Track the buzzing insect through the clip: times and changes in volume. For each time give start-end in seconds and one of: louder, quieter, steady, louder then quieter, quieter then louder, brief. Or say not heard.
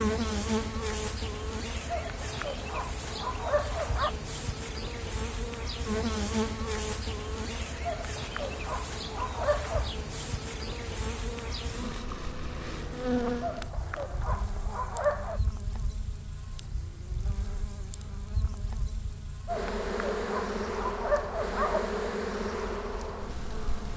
0.0-23.9 quieter then louder.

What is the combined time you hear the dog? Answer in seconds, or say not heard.
9 s.